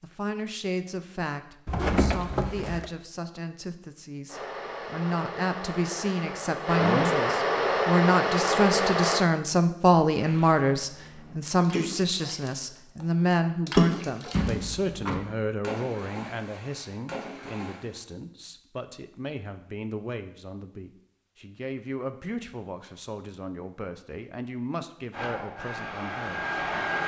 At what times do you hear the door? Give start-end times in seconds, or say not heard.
1.6-2.9, 14.3-15.2.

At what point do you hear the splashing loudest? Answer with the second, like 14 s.
14 s.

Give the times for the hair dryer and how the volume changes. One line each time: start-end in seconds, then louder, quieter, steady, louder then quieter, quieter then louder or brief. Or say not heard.
4.2-9.2 louder
25.1-27.0 brief.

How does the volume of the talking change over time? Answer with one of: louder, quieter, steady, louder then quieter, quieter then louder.
louder then quieter.